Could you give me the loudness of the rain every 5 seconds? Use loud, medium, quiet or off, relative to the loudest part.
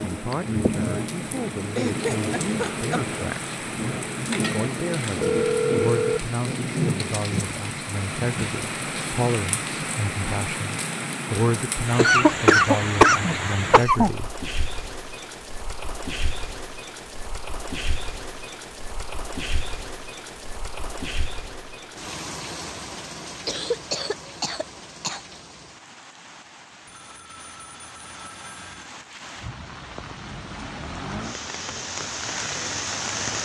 loud, loud, loud, medium, medium, quiet, loud.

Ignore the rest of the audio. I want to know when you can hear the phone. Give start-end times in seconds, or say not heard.
5.2-6.2, 26.9-28.9.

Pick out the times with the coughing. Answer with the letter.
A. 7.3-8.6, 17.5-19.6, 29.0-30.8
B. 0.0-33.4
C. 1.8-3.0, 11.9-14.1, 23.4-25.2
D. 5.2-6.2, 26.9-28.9
C.